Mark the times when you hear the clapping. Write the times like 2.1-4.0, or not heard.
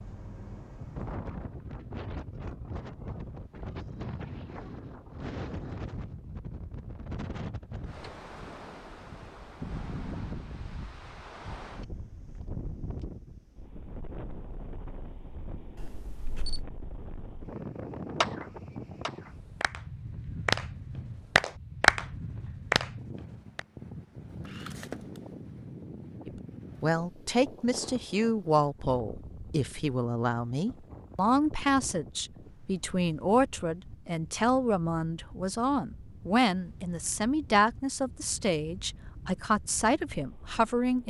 18.2-23.6.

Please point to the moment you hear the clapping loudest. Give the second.
22 s.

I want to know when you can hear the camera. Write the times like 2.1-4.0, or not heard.
15.8-16.6, 24.4-25.0.